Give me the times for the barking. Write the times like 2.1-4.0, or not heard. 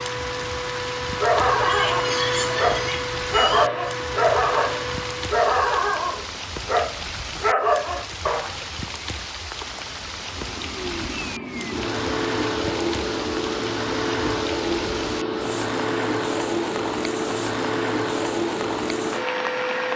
1.2-8.7.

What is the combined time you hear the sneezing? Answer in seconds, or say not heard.
2 s.